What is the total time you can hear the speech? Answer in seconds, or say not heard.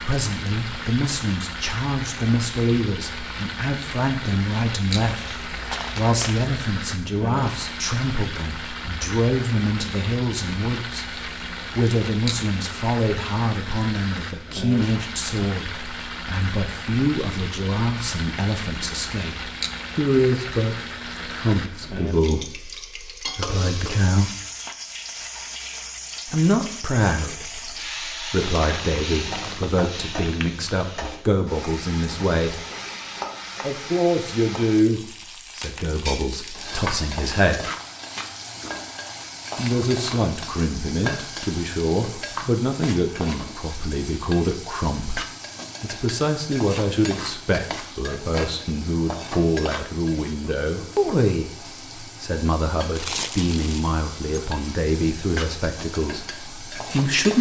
52 s.